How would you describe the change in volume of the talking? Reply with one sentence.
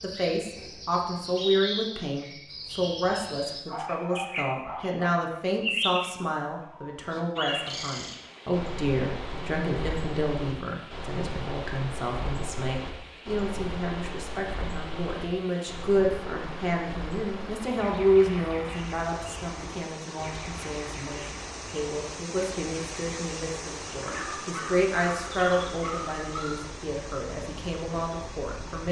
The volume of the talking stays about the same.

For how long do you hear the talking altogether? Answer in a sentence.
You can hear the talking for 29 seconds altogether.